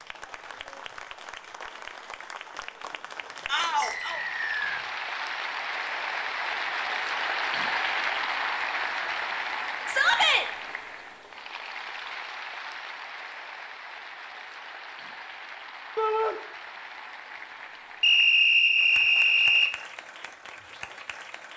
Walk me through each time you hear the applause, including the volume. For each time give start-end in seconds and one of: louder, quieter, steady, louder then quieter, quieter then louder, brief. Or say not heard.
0.0-21.5 louder then quieter.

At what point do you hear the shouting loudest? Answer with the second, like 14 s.
10 s.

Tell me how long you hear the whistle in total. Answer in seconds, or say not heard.
3 s.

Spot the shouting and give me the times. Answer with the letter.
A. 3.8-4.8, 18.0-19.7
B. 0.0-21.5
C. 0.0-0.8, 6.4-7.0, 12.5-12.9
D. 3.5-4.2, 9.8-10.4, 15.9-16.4
D.